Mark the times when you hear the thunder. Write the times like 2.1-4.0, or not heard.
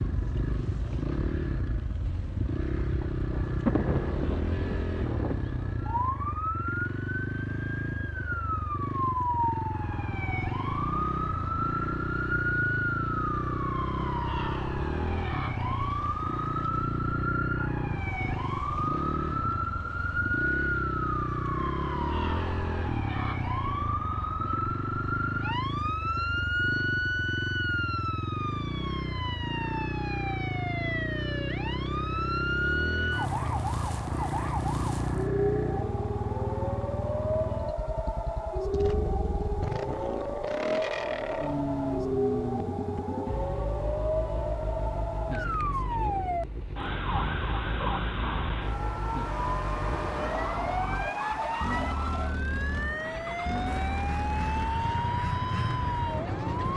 2.8-6.2.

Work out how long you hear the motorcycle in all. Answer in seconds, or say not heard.
57 s.